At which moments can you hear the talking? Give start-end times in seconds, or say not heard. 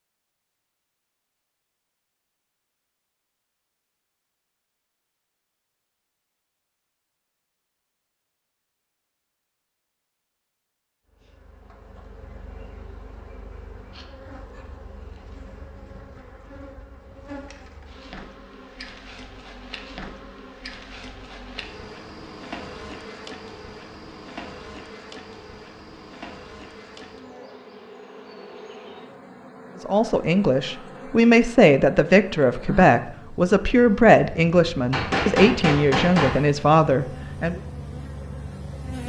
29.8-37.6.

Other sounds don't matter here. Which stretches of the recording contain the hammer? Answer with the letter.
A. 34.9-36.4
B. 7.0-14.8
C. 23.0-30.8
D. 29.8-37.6
A.